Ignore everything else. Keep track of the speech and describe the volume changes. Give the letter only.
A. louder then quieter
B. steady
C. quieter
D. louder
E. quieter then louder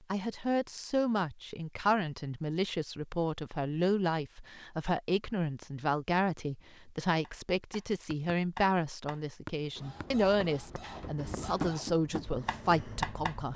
B.